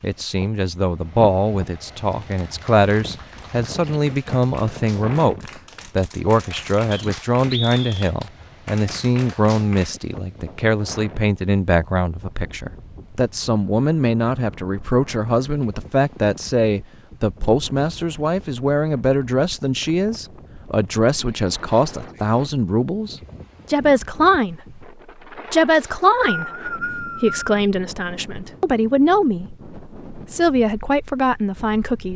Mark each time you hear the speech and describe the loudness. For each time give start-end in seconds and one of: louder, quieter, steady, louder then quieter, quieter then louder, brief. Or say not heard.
0.0-24.8 steady
25.5-32.1 steady.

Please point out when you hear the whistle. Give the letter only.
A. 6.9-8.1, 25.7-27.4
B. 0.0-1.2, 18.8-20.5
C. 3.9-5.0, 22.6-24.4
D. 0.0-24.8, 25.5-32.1
A.